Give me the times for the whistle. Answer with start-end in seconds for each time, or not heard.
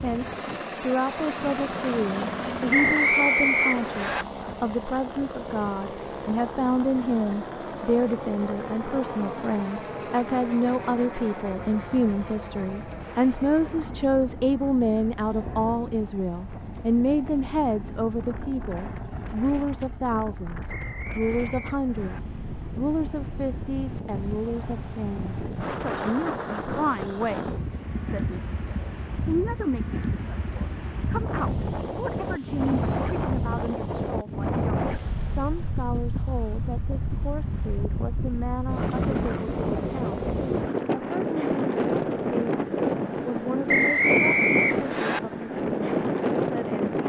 2.7-4.2, 20.6-22.2, 43.6-45.2.